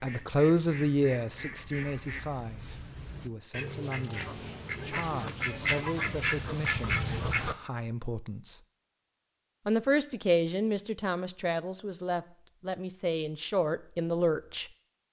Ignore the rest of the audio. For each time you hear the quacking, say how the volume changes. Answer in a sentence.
You can hear the quacking from 0.0 to 7.5 s, getting louder.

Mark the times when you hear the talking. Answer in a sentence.
The talking can be heard from 0.0 to 8.6 s and from 9.7 to 14.7 s.